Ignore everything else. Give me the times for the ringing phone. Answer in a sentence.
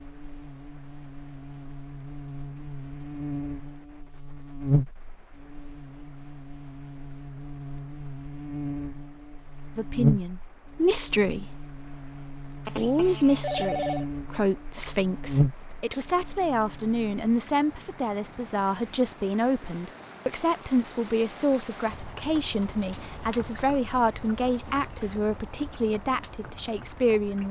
The ringing phone can be heard from 12.7 to 14.1 s.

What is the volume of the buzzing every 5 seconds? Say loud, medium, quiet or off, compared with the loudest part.
loud, medium, loud, loud, off, off.